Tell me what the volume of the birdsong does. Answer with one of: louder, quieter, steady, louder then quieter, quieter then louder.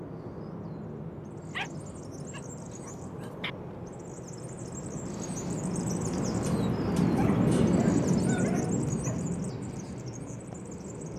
louder then quieter.